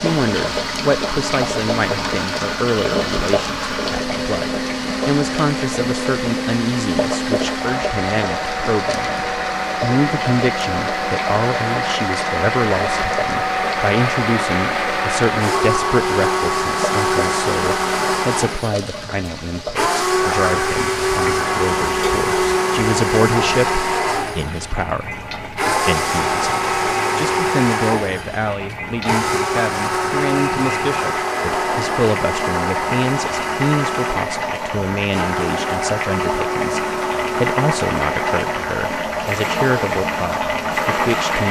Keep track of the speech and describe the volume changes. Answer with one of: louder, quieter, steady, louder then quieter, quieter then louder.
steady.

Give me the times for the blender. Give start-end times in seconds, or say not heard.
0.0-41.4.